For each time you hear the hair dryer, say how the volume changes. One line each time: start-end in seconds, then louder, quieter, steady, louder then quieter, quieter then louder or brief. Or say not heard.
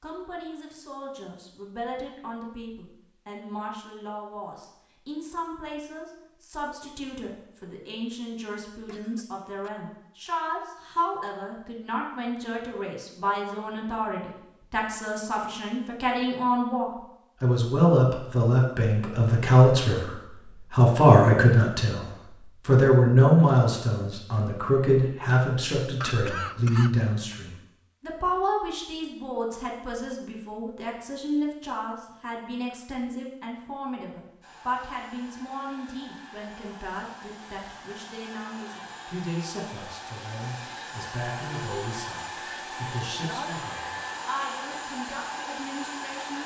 34.4-46.4 louder.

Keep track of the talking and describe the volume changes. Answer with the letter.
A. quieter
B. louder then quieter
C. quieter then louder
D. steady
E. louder
B.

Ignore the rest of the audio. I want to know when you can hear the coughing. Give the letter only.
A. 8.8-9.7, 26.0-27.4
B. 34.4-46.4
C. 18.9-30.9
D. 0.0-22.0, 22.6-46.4
A.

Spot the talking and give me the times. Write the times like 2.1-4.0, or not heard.
0.0-22.0, 22.6-46.4.